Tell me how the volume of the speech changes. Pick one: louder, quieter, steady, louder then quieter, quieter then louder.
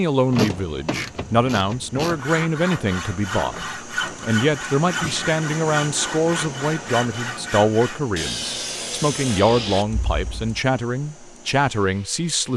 steady.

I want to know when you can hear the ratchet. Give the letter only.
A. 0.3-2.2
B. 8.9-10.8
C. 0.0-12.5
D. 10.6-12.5
A.